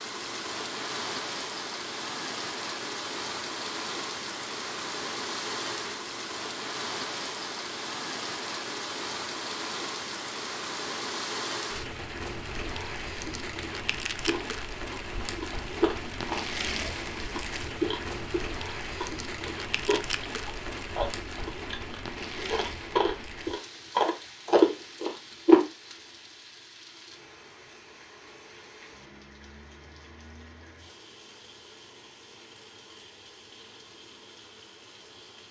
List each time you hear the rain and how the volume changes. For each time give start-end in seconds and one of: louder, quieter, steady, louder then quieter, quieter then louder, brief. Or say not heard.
0.0-35.4 quieter.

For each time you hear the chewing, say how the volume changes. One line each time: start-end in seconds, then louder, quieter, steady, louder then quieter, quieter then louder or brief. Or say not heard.
14.2-25.6 louder.